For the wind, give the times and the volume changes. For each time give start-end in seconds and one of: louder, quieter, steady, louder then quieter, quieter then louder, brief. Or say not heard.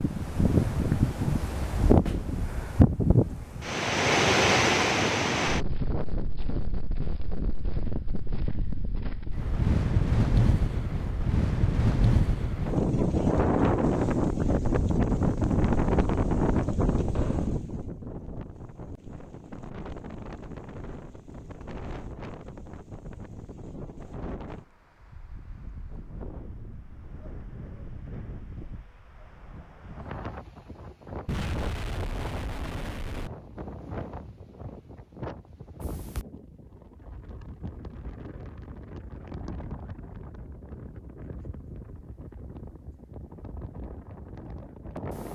0.0-45.3 quieter.